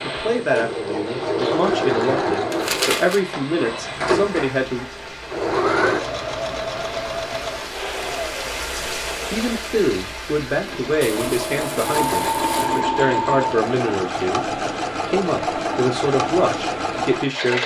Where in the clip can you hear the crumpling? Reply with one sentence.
You can hear the crumpling from 2.5 to 3.2 s and from 11.0 to 12.8 s.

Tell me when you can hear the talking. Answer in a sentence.
The talking can be heard from 0.0 to 4.8 s and from 9.3 to 17.6 s.